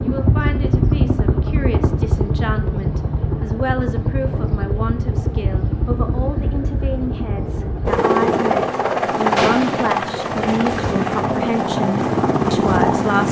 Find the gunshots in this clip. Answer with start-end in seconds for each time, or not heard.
9.3-9.8.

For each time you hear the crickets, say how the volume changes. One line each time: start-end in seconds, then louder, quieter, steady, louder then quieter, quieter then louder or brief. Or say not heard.
not heard.